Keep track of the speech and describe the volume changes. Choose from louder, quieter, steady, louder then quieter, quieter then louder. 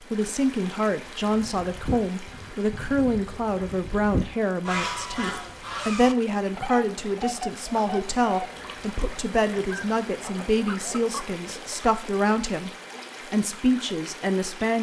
steady.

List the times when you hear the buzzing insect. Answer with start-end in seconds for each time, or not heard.
not heard.